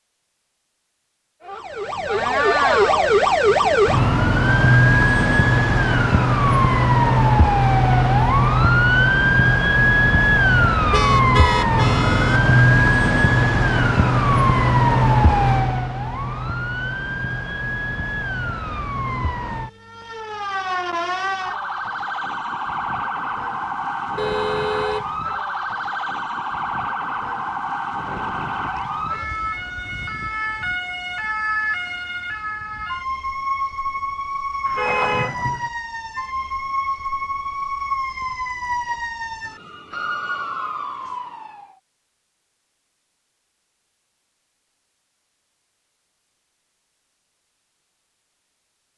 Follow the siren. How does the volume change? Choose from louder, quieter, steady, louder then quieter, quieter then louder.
quieter.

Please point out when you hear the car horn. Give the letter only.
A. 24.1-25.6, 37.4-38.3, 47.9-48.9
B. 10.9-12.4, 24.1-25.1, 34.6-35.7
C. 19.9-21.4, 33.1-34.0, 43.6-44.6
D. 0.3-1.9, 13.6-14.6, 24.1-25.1
B.